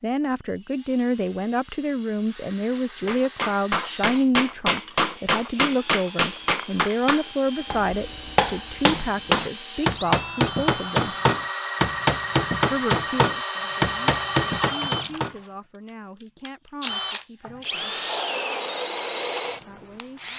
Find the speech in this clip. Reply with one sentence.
You can hear the speech from 0.0 to 11.2 s, from 12.7 to 18.0 s and from 19.6 to 20.2 s.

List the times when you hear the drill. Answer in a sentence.
The drill can be heard from 0.5 to 15.5 s and from 16.4 to 20.3 s.